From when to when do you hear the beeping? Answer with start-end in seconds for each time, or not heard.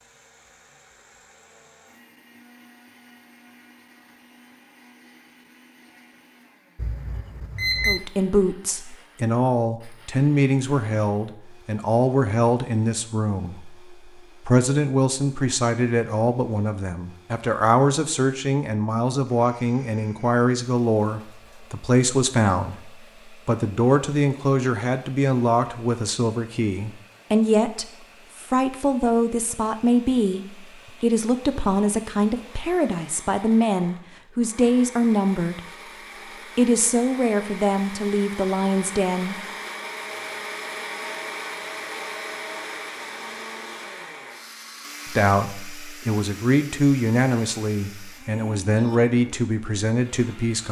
6.8-8.0.